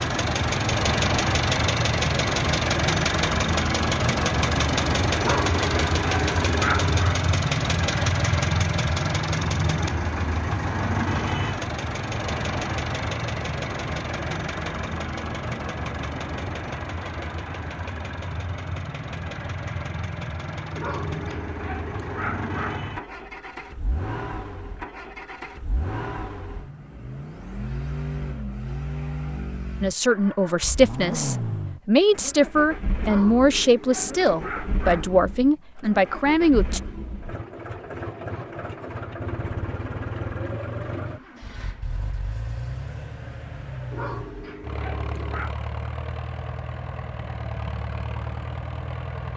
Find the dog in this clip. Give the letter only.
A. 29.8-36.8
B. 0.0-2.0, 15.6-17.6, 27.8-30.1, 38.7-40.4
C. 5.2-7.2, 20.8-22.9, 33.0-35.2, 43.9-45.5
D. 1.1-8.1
C.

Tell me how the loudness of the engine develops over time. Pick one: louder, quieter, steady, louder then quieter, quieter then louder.
quieter.